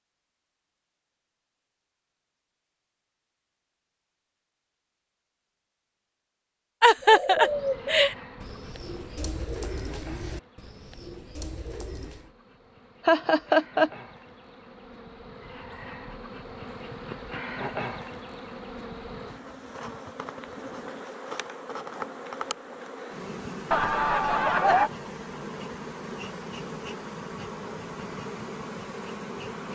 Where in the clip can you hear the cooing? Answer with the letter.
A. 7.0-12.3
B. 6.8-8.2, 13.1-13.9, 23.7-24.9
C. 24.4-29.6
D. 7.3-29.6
A.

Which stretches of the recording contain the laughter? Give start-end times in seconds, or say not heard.
6.8-8.2, 13.1-13.9, 23.7-24.9.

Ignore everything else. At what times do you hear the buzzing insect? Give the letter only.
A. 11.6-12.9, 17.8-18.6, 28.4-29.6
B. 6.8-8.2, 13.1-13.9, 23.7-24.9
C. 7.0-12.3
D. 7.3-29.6
D.